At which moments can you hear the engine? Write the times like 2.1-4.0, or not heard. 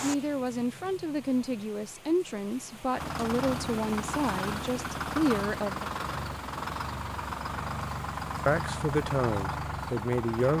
3.0-10.5.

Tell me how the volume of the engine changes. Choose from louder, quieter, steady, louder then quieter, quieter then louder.
steady.